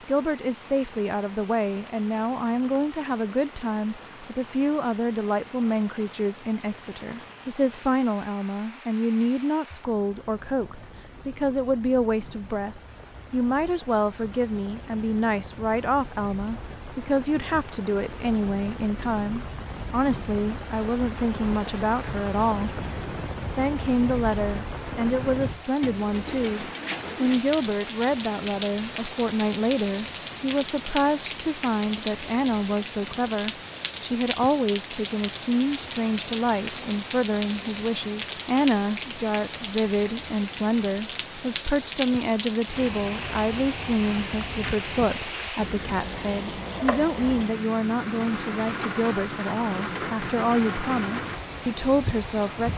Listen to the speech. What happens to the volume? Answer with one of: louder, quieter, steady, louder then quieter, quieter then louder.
steady.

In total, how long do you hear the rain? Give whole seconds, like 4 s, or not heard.
53 s.